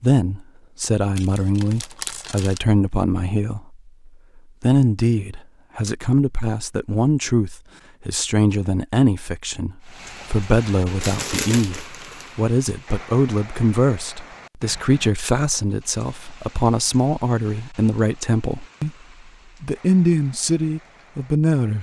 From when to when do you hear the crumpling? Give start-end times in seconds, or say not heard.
1.1-2.6, 11.0-12.3.